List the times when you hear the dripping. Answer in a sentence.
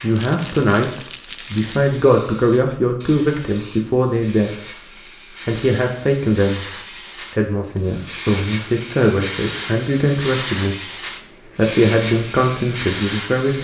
You can't hear the dripping here.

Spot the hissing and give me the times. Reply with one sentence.
You can hear the hissing from 0.0 to 13.5 s.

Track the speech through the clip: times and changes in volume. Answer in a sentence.
The speech can be heard from 0.0 to 13.5 s, at a steady volume.